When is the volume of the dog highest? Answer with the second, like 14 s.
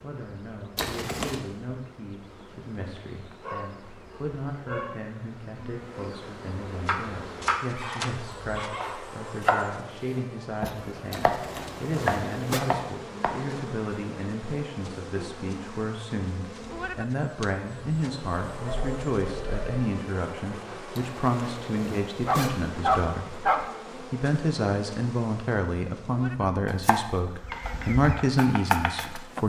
23 s.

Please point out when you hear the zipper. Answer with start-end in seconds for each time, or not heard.
0.8-1.4, 11.1-12.6, 20.9-22.6.